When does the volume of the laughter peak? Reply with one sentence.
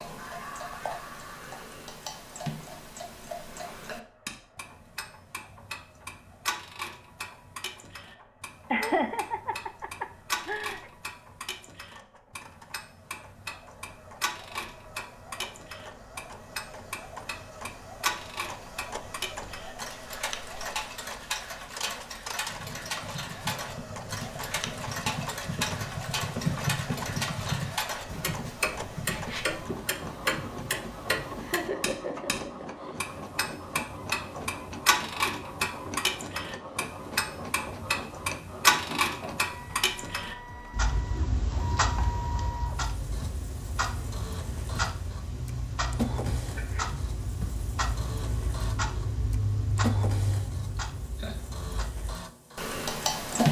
The loudest moment of the laughter is at 9 seconds.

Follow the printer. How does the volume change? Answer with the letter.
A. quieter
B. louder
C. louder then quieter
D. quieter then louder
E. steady
B.